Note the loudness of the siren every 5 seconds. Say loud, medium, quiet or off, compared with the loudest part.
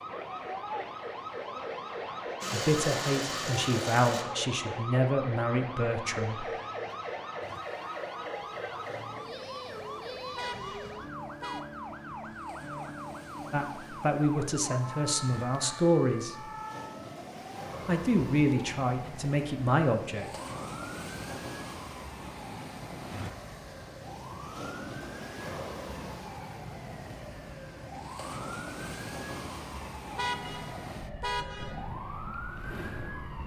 loud, loud, loud, medium, medium, medium, medium.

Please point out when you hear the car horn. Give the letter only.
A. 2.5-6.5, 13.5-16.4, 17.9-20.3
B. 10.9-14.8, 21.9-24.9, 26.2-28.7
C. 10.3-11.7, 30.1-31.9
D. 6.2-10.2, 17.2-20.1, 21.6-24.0
C.